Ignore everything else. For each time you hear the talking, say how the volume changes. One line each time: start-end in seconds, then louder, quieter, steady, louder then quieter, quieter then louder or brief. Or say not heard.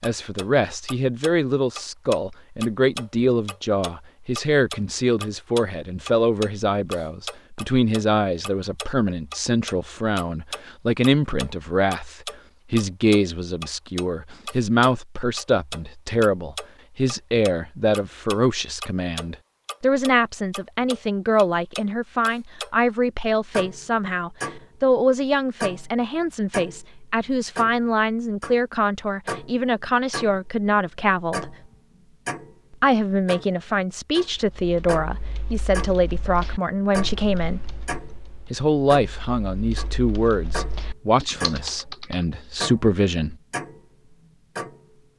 0.0-31.6 steady
32.8-37.6 steady
38.5-43.4 quieter then louder.